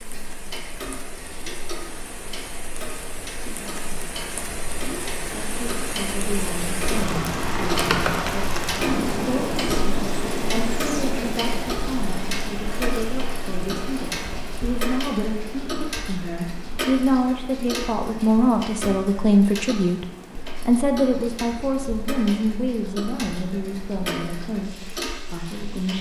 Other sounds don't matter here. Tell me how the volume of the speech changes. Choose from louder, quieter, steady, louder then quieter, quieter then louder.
louder then quieter.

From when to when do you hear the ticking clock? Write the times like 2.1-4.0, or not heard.
0.0-25.9.